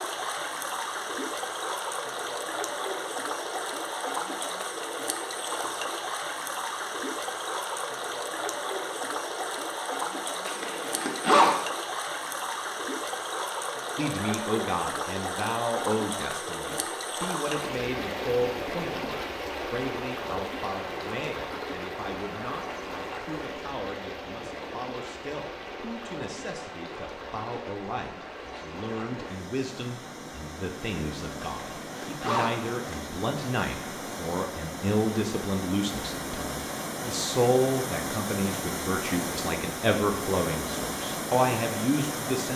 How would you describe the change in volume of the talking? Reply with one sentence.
The loudness of the talking goes down, then up.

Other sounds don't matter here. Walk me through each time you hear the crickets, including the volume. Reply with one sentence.
The crickets can't be heard in this clip.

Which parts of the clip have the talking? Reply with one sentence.
The talking can be heard from 13.9 to 42.5 s.